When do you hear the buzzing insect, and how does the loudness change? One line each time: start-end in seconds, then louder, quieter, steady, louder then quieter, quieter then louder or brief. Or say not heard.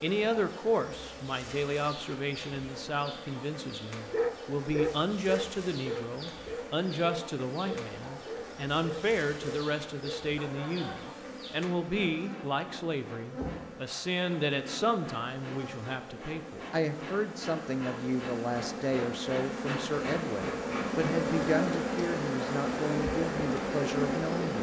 0.0-24.5 louder.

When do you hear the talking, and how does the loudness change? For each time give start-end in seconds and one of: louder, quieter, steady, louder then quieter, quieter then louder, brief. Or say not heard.
0.0-24.5 steady.